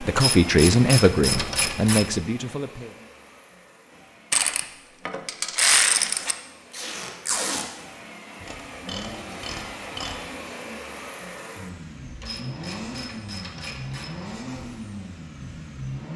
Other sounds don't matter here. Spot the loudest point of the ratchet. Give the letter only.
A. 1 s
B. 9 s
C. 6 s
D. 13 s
C.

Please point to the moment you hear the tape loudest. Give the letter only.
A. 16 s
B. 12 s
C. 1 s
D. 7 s
D.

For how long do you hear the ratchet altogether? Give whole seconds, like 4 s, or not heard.
8 s.